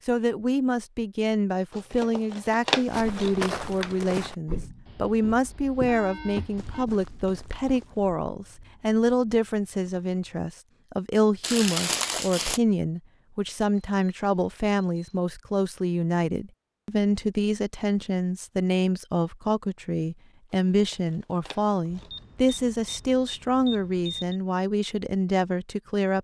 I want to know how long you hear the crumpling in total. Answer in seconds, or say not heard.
5 s.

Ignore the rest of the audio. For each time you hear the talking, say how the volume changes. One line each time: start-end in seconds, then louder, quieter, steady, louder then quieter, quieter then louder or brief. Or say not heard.
0.1-26.1 steady.